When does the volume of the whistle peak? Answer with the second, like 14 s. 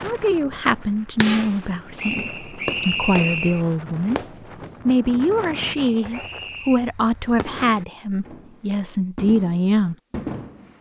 3 s.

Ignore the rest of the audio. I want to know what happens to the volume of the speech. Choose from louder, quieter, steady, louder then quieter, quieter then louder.
steady.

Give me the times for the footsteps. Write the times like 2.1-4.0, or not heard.
not heard.